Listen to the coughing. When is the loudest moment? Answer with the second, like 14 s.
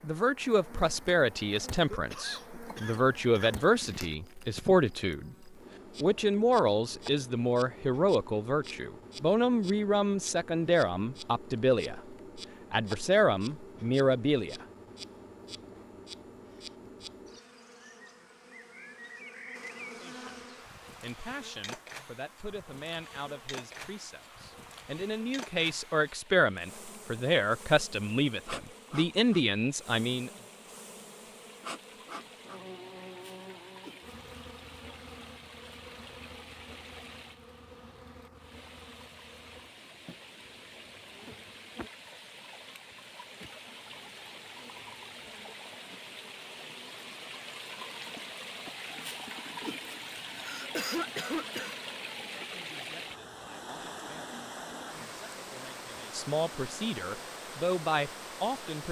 51 s.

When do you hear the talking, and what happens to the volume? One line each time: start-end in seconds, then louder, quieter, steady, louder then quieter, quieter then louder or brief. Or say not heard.
0.0-14.7 steady
20.0-30.3 louder
52.4-58.8 louder.